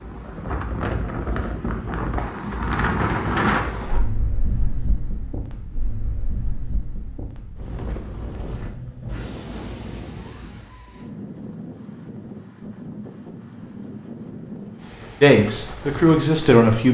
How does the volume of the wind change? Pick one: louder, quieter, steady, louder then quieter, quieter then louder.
quieter.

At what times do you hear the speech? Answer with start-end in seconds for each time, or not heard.
15.2-16.8.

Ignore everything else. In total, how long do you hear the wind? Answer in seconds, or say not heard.
17 s.